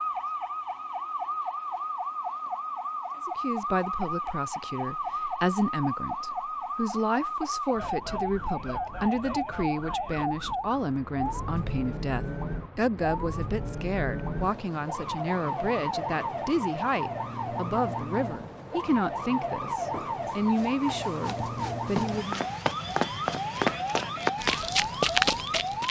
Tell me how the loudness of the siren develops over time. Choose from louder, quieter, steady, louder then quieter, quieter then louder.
steady.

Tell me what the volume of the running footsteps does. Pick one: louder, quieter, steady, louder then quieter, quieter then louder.
louder.